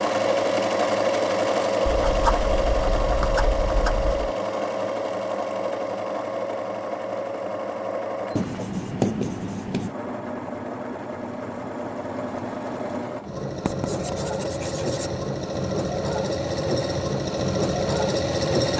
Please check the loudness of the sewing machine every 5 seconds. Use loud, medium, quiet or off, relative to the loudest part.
loud, medium, medium, loud.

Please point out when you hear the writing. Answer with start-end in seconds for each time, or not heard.
1.9-4.3, 8.3-9.9, 13.7-15.1.